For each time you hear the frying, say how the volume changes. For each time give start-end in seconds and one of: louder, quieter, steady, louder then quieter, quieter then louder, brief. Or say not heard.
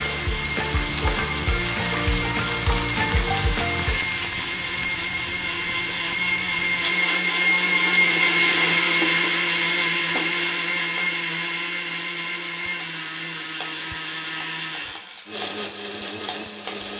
0.0-16.9 quieter.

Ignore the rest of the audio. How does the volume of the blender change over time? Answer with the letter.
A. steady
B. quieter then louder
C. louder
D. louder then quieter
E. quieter
D.